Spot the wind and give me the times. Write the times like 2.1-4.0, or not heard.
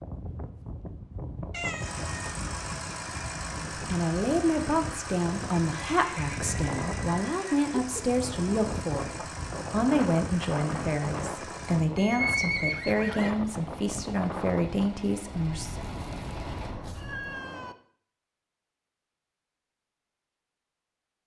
0.0-17.4.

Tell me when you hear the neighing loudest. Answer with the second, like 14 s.
12 s.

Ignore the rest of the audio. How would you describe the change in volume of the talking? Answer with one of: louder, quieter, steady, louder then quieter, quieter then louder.
steady.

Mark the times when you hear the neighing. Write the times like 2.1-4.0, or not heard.
5.9-7.7, 11.9-13.3.